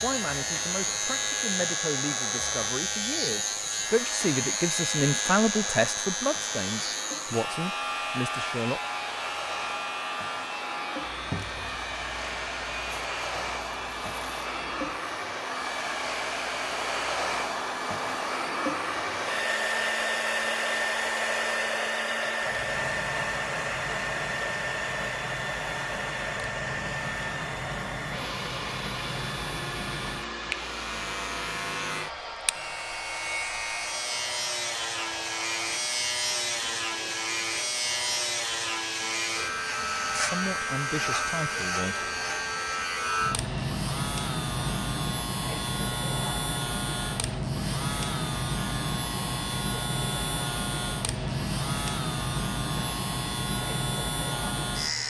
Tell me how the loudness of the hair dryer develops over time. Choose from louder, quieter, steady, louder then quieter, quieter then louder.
louder then quieter.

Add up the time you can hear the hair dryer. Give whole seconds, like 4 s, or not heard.
55 s.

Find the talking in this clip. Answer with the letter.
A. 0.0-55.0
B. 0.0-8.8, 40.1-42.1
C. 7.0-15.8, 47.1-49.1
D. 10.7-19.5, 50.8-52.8
B.